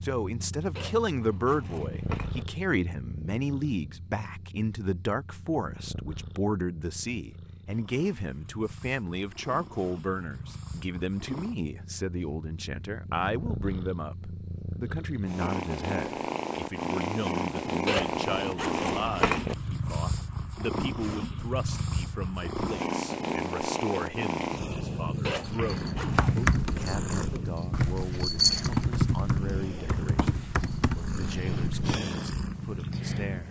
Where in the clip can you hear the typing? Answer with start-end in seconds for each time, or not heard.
26.1-32.0.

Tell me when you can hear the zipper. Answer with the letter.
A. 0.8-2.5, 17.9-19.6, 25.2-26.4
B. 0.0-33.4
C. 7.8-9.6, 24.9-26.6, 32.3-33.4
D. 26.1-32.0
A.